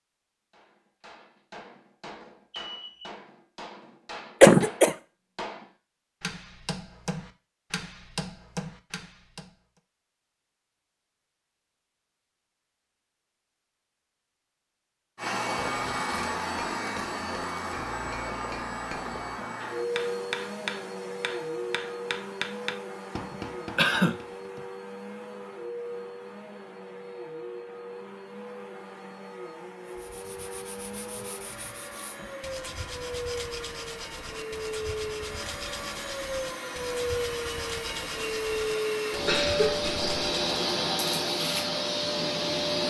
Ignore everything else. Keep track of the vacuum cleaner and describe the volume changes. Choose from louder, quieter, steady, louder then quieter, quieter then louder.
quieter then louder.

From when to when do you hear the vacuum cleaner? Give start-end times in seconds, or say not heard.
15.2-42.8.